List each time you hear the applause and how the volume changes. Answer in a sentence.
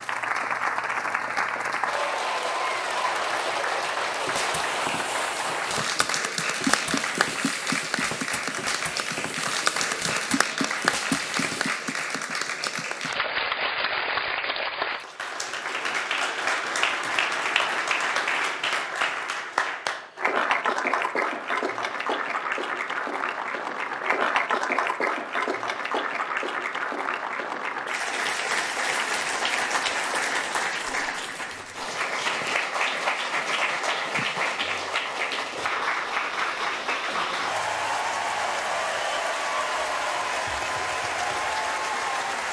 You can hear the applause from 0.0 to 42.4 s, at a steady volume.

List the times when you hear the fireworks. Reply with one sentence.
You can hear the fireworks from 4.2 to 11.7 s.